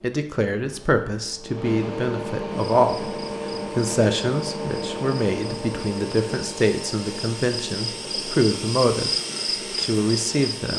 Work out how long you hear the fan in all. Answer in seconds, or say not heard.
11 s.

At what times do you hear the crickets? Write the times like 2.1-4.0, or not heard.
2.6-10.7.